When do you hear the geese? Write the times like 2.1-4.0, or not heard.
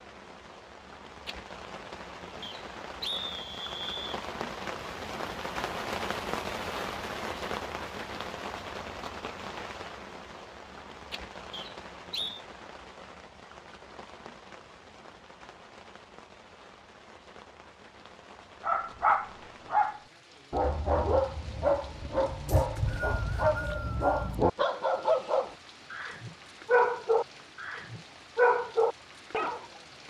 not heard.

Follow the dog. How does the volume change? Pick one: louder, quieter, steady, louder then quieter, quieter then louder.
steady.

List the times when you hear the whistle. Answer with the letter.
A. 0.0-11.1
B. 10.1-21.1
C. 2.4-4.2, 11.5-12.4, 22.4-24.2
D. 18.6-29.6
C.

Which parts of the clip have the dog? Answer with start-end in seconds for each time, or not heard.
18.6-29.6.